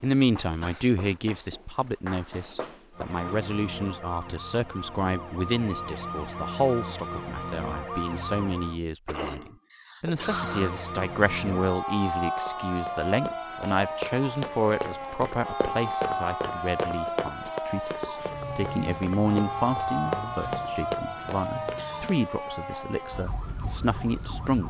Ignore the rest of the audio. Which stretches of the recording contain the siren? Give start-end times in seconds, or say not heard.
3.0-8.8, 10.1-24.6.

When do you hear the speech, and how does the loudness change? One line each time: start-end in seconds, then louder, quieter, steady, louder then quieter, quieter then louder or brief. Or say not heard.
0.0-24.6 steady.